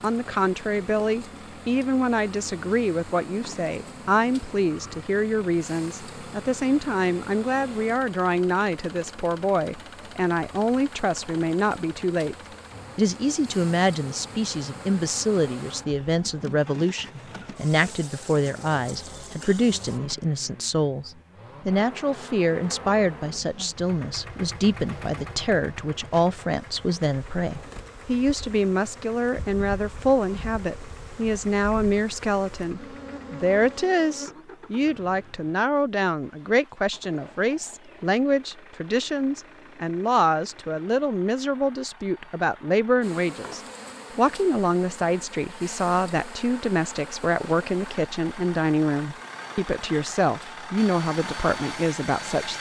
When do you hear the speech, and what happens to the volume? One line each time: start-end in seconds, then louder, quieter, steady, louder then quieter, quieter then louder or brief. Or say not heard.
0.0-12.3 steady
12.9-52.5 steady.